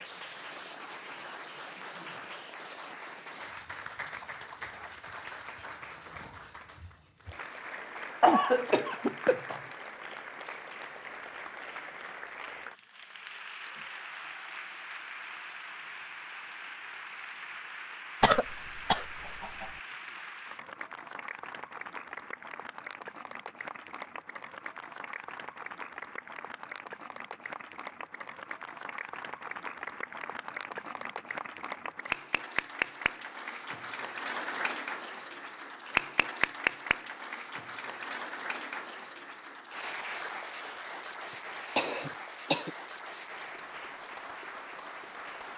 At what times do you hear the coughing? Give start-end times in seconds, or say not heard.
8.2-9.6, 18.2-19.6, 41.8-42.7.